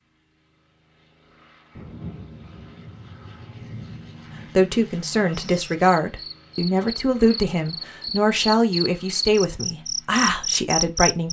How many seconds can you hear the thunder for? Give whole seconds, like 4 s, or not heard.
3 s.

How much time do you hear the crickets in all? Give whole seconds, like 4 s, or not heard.
6 s.